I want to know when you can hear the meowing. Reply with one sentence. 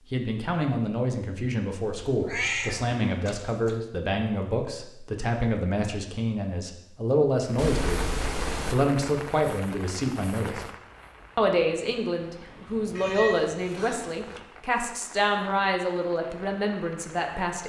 You can hear the meowing from 1.9 to 3.8 s, from 7.5 to 8.8 s and from 12.9 to 14.4 s.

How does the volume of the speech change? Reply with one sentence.
The volume of the speech stays about the same.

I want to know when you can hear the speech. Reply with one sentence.
The speech can be heard from 0.1 to 10.7 s and from 11.3 to 17.6 s.